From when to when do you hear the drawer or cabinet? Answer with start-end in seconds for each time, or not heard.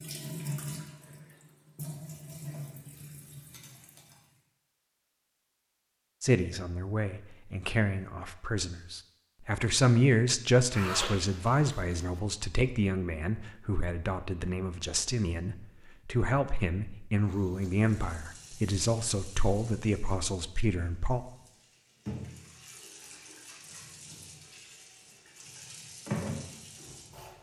not heard.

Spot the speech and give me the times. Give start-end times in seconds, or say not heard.
6.2-21.2.